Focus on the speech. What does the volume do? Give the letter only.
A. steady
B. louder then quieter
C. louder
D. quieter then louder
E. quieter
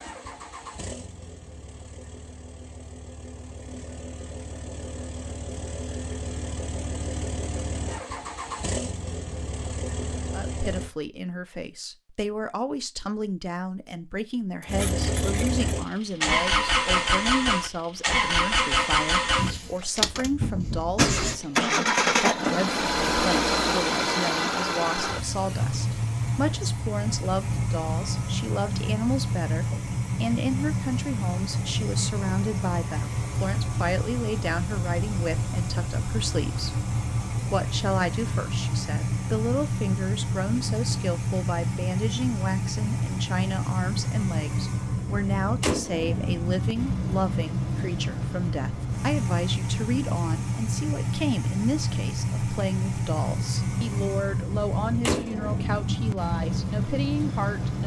A.